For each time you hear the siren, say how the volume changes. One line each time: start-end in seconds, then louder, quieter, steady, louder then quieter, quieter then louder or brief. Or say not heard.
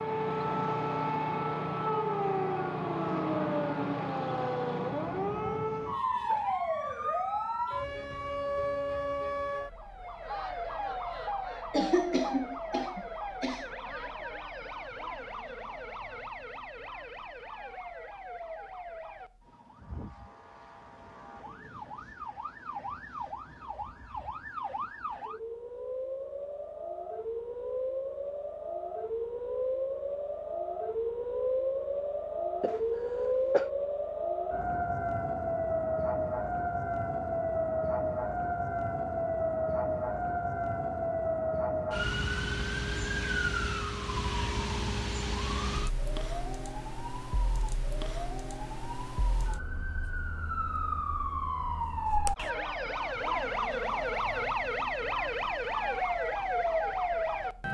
0.0-57.6 quieter then louder.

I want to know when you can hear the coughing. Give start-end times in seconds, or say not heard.
11.7-13.7, 32.6-33.6.